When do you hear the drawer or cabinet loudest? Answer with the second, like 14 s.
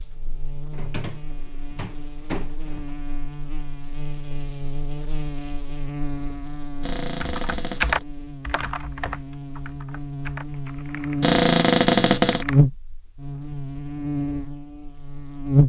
12 s.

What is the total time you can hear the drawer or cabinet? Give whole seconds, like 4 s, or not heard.
5 s.